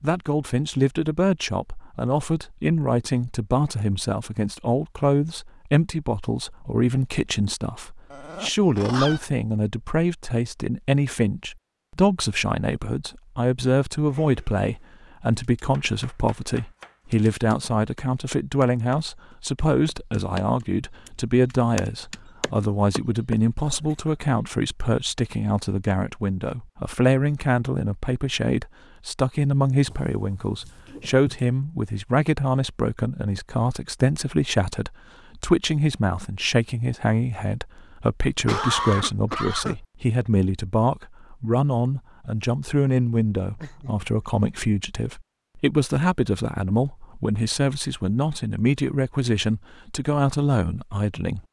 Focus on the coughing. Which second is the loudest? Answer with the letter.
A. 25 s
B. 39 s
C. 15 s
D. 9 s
B.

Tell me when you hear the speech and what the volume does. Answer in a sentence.
The speech can be heard from 0.0 to 51.4 s, at a steady volume.